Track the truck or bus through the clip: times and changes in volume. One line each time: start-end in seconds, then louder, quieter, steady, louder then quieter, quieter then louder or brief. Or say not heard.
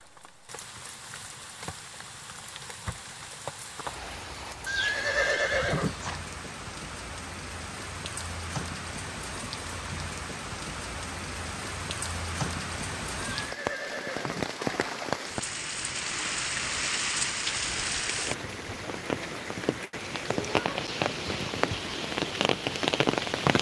not heard.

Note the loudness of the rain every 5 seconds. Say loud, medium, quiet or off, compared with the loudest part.
quiet, medium, medium, loud, loud.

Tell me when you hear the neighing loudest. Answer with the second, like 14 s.
5 s.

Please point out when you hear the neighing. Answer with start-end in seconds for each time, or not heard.
4.7-6.2, 13.3-15.1.